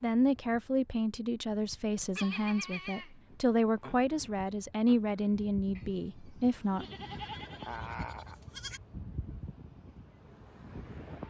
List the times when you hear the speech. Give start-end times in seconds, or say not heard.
0.0-6.9.